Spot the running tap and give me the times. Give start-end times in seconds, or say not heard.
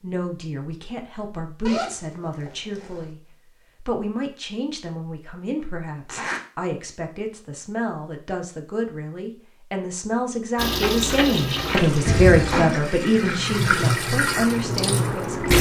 10.6-15.5.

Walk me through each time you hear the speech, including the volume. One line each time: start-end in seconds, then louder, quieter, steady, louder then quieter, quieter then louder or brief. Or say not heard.
0.0-15.5 louder.